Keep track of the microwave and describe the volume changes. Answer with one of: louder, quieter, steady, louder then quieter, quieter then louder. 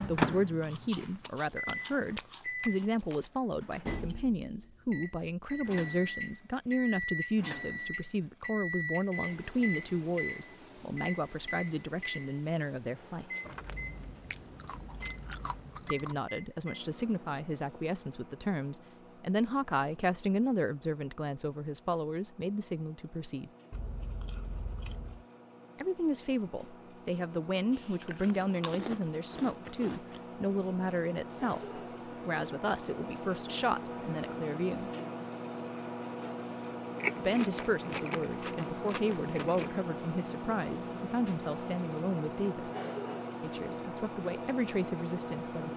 quieter then louder.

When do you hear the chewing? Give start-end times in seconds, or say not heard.
0.7-3.1, 13.4-16.1, 23.7-25.2, 27.8-30.2, 37.0-39.6.